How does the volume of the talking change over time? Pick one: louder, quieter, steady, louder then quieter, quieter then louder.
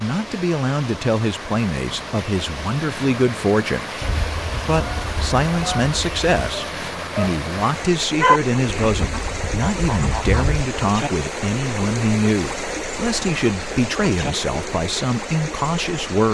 steady.